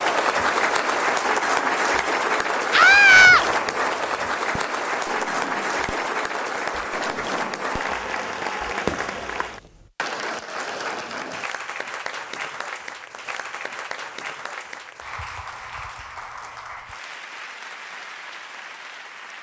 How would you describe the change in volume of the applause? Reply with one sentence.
The loudness of the applause goes down.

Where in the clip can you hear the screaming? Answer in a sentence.
You can hear the screaming from 2.7 to 3.5 s.